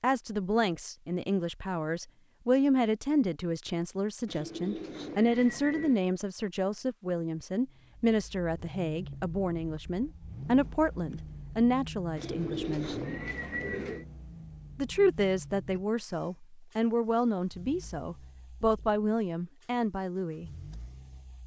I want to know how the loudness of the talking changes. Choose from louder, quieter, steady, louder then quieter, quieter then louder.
steady.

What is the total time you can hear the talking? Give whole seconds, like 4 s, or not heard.
19 s.